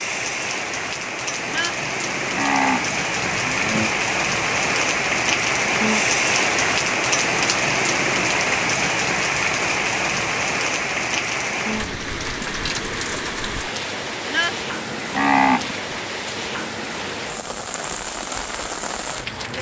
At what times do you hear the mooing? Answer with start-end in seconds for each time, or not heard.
1.4-3.9, 14.2-16.1.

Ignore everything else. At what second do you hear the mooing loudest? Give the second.
15 s.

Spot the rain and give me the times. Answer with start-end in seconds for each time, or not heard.
0.0-19.5.